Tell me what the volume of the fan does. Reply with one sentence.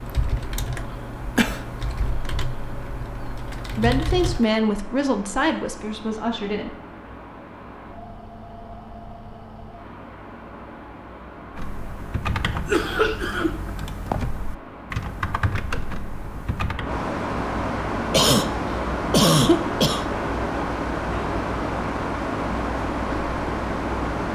The loudness of the fan goes up.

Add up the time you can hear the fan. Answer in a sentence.
The fan can be heard for 24 seconds in total.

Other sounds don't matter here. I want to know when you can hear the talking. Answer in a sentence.
The talking can be heard from 3.7 to 6.8 s.